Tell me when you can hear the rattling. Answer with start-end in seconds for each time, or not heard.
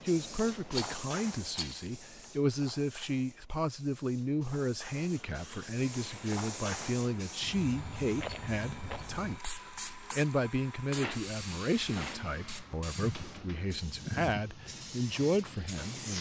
0.7-1.9, 8.2-9.1, 10.8-12.2.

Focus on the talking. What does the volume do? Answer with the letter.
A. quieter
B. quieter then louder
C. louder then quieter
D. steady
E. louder
D.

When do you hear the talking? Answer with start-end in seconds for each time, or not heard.
0.1-16.1.